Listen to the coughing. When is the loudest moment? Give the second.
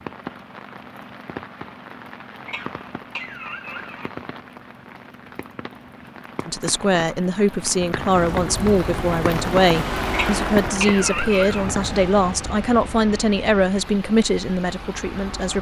11 s.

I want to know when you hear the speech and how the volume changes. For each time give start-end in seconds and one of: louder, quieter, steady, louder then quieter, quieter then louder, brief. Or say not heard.
6.5-15.5 steady.